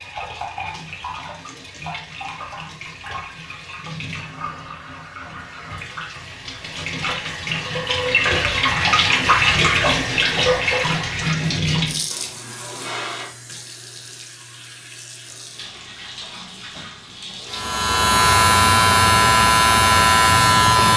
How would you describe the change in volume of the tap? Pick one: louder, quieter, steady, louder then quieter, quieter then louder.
louder then quieter.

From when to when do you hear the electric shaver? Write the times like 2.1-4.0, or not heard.
17.5-20.9.